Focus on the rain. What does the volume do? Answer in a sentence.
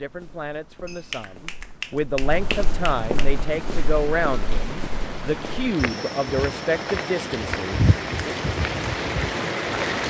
The volume of the rain goes up.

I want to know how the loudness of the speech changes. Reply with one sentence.
The loudness of the speech goes up.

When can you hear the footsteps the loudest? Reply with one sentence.
The volume of the footsteps peaks at 8 seconds.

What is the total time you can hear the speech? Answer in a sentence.
You can hear the speech for 8 seconds altogether.